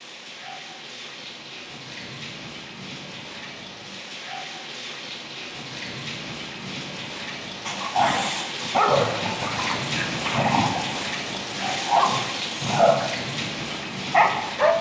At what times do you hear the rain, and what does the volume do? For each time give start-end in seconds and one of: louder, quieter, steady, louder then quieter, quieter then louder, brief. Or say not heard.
0.0-14.7 louder.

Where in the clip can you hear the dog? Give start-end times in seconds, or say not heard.
7.7-14.7.